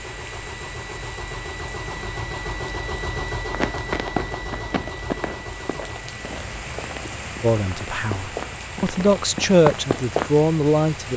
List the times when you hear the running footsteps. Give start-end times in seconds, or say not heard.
3.5-10.3.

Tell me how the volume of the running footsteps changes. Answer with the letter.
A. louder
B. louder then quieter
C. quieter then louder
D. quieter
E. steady
C.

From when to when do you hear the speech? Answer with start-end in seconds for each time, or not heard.
7.4-11.1.